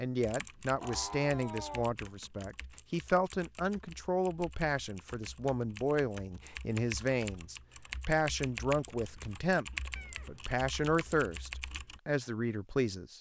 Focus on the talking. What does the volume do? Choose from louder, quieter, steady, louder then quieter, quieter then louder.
steady.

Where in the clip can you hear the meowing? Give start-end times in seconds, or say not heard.
0.8-1.9, 9.9-10.5.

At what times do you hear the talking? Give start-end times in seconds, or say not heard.
0.0-13.1.